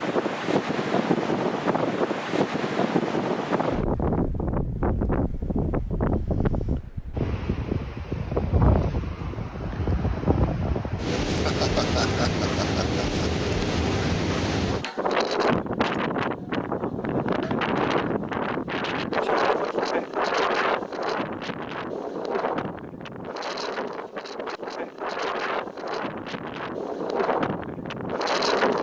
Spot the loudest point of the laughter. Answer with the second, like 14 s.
12 s.